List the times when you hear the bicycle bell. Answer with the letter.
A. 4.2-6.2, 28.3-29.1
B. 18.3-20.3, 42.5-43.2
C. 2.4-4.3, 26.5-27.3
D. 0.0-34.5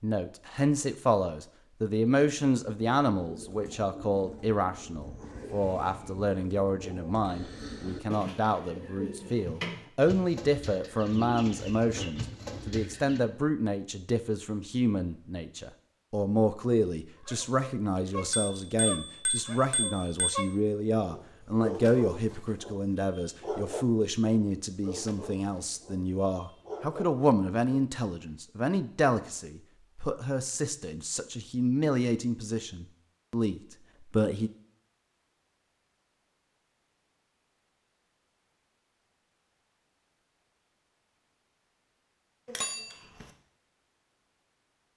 B.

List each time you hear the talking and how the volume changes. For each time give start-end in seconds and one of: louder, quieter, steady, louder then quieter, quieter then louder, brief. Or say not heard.
0.0-34.5 steady.